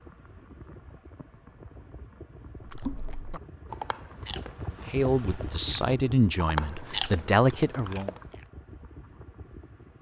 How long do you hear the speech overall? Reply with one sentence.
The speech can be heard for 3 seconds in total.